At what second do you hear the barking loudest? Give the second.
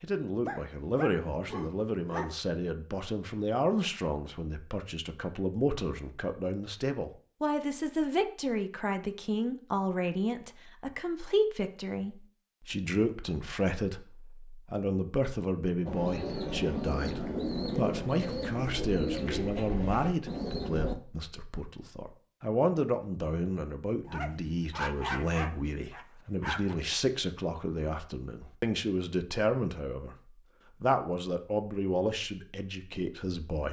25 s.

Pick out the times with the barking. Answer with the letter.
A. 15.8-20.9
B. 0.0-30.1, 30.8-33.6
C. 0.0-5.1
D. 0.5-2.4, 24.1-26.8
D.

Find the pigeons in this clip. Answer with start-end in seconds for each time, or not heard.
15.8-20.9.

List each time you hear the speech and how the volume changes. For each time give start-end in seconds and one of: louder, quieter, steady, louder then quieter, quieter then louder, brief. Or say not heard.
0.0-30.1 steady
30.8-33.6 brief.